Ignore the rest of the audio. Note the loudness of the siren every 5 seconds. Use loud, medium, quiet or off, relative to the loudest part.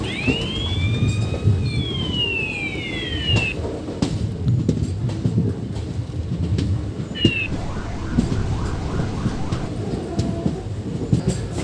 loud, loud, off.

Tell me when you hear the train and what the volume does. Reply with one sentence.
You can hear the train from 0.0 to 11.5 s, at a steady volume.